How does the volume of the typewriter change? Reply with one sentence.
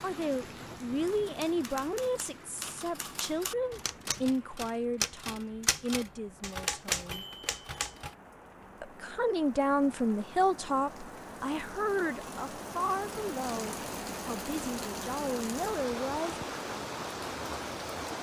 The volume of the typewriter goes up.